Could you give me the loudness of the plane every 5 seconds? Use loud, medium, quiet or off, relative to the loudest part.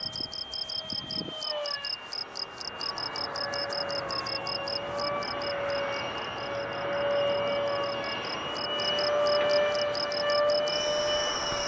medium, loud, loud.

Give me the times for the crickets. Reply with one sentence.
You can hear the crickets from 0.0 to 11.6 s.